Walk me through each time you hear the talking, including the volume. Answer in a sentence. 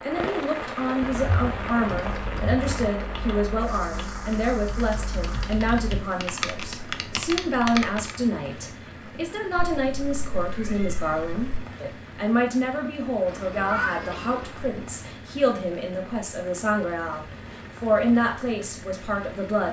The talking can be heard from 0.0 to 19.6 s, at a steady volume.